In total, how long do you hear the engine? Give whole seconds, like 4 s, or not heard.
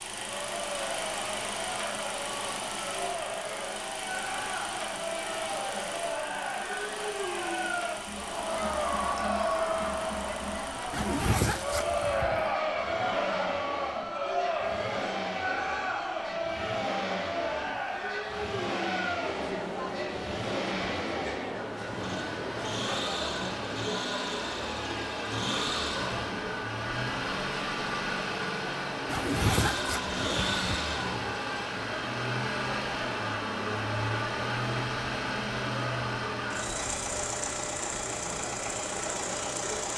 40 s.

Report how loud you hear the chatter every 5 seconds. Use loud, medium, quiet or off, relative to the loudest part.
medium, loud, loud, loud, medium, medium, medium, medium.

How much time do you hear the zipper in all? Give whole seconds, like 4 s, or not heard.
3 s.